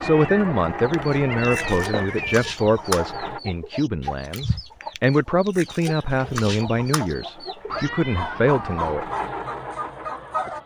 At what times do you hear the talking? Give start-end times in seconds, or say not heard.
0.0-9.1.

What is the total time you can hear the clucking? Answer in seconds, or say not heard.
10 s.